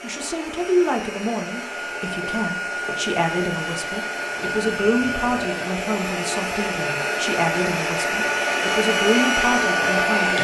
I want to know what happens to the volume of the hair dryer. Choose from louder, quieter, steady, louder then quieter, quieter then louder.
louder.